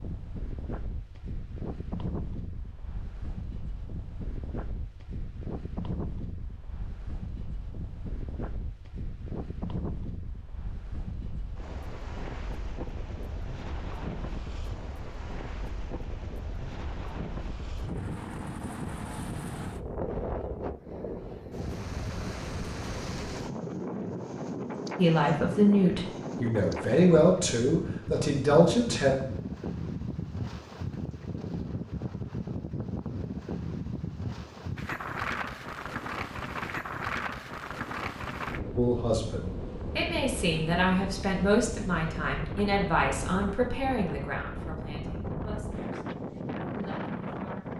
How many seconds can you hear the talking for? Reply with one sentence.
You can hear the talking for 13 seconds altogether.